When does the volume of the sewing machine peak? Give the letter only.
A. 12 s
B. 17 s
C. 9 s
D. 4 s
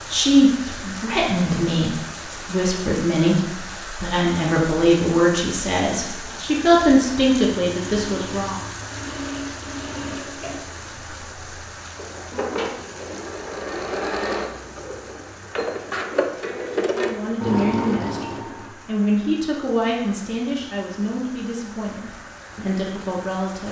B.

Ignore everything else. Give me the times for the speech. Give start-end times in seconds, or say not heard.
0.1-8.6, 16.9-23.6.